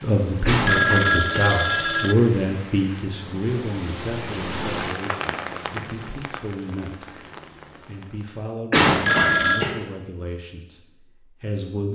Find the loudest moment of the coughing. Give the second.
9 s.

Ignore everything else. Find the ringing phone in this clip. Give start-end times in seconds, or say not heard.
0.7-2.1, 9.1-9.7.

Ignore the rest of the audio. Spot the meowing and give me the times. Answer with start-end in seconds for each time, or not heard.
not heard.